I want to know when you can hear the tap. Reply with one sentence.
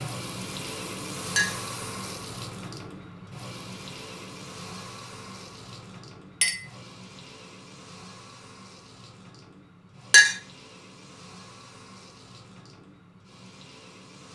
You can hear the tap from 0.0 to 14.3 s.